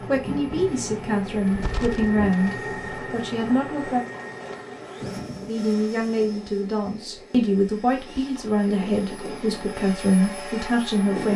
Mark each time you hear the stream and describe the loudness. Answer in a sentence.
The stream can't be heard in this clip.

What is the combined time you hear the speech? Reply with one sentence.
The speech can be heard for 10 seconds in total.